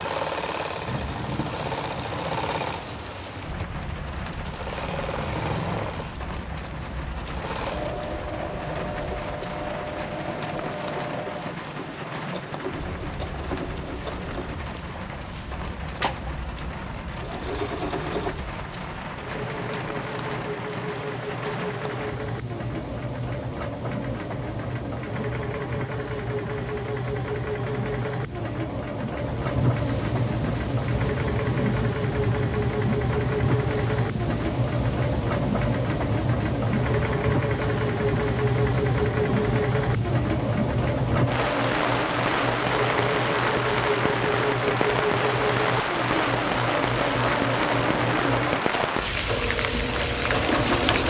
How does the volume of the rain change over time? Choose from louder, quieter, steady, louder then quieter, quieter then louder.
louder.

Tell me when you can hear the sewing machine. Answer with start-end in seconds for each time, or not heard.
0.0-51.0.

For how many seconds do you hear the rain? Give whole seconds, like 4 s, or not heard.
51 s.